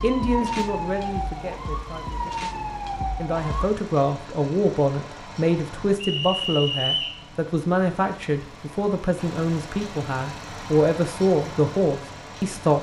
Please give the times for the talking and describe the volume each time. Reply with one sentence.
The talking can be heard from 0.0 to 12.7 s, getting louder.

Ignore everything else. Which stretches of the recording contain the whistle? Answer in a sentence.
You can hear the whistle from 6.0 to 7.2 s.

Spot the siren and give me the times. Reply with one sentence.
You can hear the siren from 0.0 to 3.6 s.